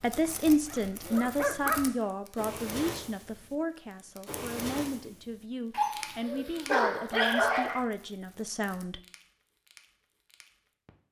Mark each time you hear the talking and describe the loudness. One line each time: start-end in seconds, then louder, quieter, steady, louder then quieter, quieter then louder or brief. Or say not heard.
0.0-9.0 quieter.